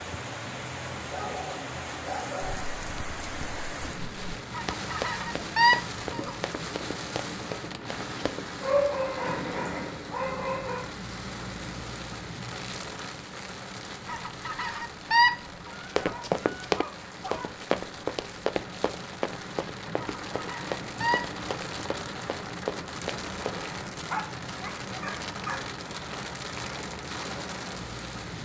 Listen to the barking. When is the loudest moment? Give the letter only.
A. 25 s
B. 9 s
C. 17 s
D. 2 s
B.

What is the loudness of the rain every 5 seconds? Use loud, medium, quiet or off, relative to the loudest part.
loud, loud, loud, medium, loud, loud.